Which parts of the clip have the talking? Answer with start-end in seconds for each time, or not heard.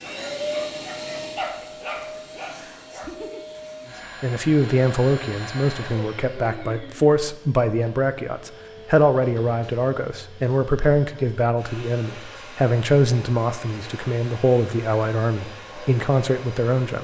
4.2-16.9.